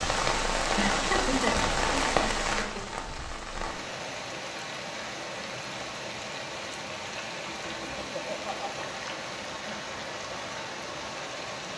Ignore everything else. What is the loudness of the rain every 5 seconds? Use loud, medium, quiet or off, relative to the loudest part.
loud, medium, medium.